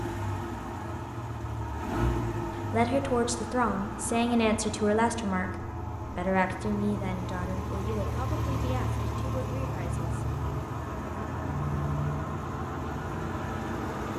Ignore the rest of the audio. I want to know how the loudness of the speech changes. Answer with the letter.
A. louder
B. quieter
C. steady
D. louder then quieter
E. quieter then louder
B.